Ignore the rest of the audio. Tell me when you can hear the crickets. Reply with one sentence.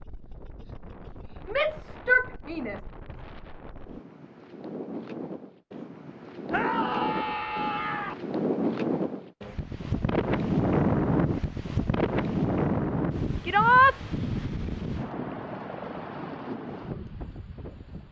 You can't hear the crickets here.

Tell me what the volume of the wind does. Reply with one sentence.
The volume of the wind goes up, then down.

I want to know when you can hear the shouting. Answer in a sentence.
You can hear the shouting from 1.4 to 2.8 s, from 6.5 to 8.2 s and from 13.4 to 13.9 s.